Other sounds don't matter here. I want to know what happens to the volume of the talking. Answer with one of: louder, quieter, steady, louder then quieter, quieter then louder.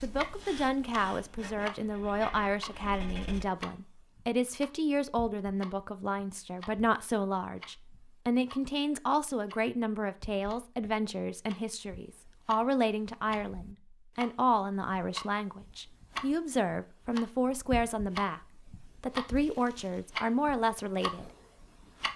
steady.